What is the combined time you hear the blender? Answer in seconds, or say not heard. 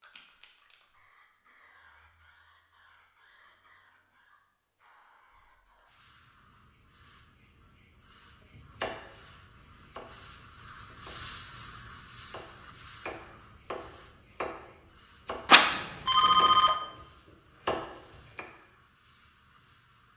not heard.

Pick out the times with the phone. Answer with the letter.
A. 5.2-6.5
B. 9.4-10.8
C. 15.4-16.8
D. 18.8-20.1
C.